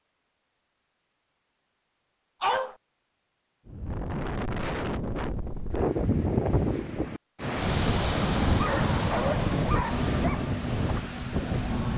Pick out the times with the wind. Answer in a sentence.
The wind can be heard from 3.6 to 11.9 s.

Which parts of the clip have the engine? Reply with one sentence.
You can hear the engine from 9.8 to 11.9 s.